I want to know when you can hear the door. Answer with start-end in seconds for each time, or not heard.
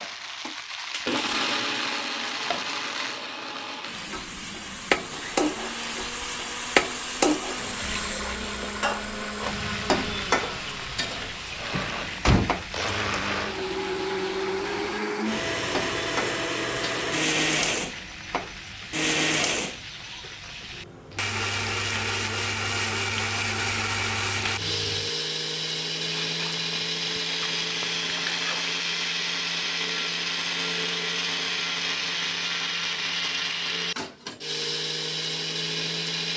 11.7-12.6.